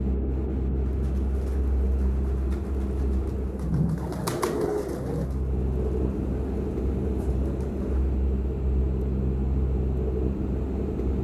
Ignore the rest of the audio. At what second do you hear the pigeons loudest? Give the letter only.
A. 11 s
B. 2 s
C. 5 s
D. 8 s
C.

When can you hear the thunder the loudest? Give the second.
4 s.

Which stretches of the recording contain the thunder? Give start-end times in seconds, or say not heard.
3.6-5.2.